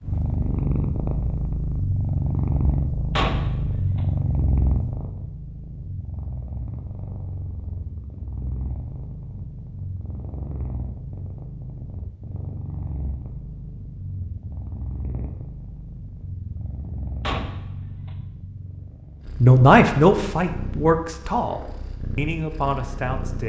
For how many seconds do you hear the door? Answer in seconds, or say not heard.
2 s.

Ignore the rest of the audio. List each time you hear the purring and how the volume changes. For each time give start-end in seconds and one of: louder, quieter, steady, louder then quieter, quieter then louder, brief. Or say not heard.
0.0-23.4 quieter.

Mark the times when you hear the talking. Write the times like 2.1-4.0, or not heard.
19.4-23.4.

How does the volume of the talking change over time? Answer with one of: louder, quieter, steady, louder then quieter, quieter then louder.
quieter.